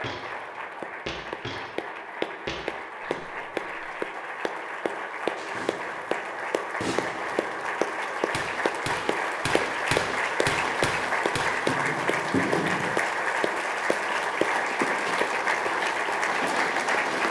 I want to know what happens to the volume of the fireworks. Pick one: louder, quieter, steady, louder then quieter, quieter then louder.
quieter then louder.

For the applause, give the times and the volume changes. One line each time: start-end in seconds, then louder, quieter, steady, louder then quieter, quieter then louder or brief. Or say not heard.
0.0-17.2 louder.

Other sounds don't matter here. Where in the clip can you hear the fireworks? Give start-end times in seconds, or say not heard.
5.3-12.9.